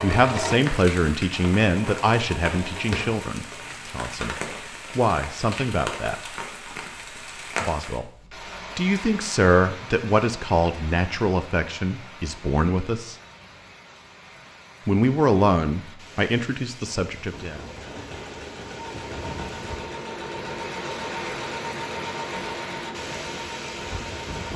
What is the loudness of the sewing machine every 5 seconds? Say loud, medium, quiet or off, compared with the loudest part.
loud, off, off, medium, loud.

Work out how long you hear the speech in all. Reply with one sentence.
You can hear the speech for 13 seconds altogether.